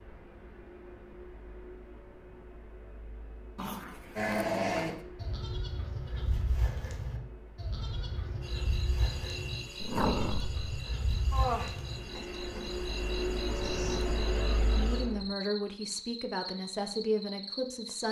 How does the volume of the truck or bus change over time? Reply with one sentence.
The loudness of the truck or bus goes up.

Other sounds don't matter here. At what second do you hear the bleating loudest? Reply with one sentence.
The volume of the bleating peaks at 5 seconds.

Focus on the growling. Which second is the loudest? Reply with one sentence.
The volume of the growling peaks at 10 seconds.